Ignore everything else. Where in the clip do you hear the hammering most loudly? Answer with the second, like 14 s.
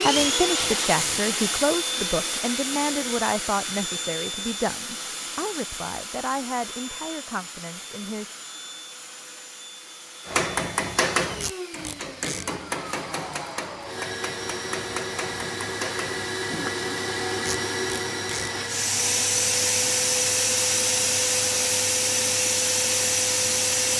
11 s.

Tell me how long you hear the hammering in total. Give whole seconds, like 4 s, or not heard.
7 s.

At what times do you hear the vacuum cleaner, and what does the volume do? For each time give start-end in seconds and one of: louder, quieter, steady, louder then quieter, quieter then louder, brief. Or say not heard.
0.0-23.9 quieter then louder.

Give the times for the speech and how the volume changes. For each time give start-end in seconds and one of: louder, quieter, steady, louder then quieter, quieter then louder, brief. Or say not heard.
0.0-8.3 quieter.